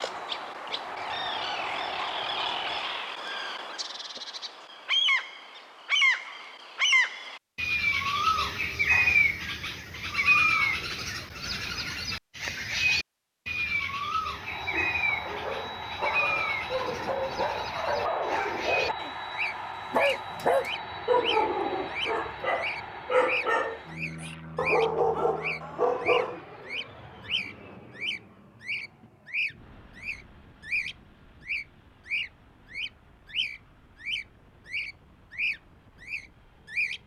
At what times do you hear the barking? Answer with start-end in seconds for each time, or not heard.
14.7-26.4.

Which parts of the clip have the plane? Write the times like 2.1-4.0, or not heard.
0.0-3.0, 14.3-37.0.